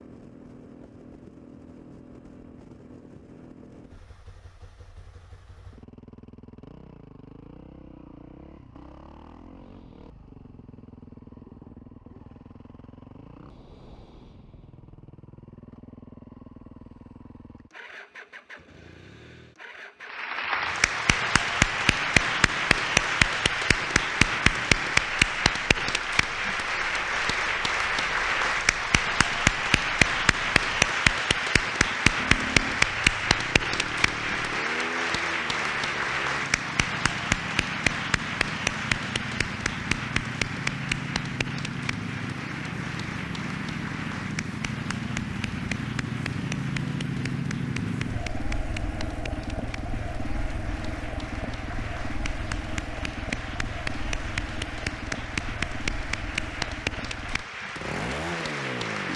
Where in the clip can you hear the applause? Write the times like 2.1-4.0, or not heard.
20.1-59.1.